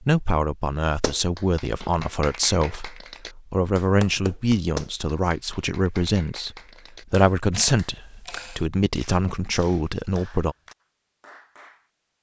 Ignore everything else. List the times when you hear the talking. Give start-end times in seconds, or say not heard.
0.0-10.6.